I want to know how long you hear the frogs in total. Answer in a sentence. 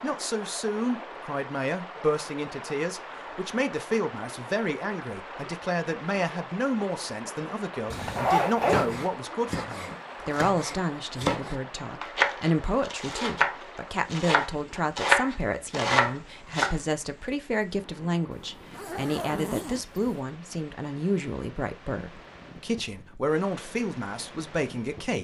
You can't hear the frogs here.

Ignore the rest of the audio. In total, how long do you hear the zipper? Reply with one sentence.
You can hear the zipper for 3 seconds altogether.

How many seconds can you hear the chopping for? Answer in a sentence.
The chopping can be heard for 8 seconds in total.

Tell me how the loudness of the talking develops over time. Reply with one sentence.
The loudness of the talking stays about the same.